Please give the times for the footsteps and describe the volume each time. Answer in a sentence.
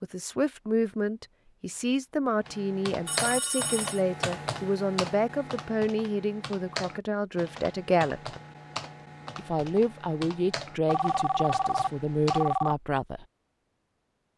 You can't hear the footsteps here.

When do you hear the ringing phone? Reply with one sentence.
You can hear the ringing phone from 3.0 to 4.0 s and from 10.8 to 12.8 s.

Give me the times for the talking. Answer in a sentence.
You can hear the talking from 0.0 to 8.4 s and from 9.3 to 13.2 s.